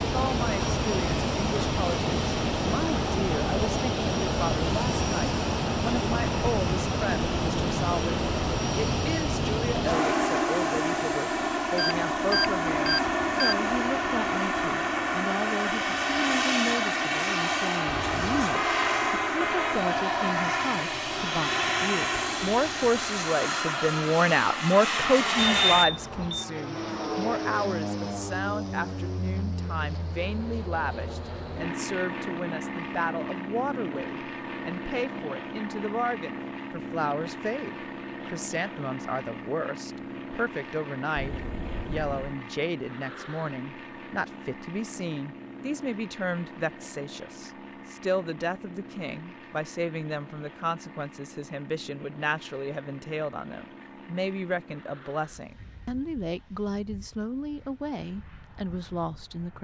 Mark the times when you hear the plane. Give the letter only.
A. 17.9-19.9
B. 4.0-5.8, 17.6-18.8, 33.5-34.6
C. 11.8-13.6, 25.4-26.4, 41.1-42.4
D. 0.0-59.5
D.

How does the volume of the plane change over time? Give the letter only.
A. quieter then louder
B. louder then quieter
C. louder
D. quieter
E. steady
D.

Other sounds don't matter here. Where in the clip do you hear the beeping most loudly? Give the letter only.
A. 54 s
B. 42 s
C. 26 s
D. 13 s
C.